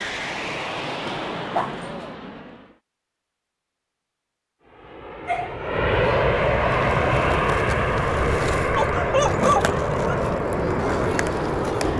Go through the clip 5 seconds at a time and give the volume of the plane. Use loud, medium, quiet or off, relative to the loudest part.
medium, loud, loud.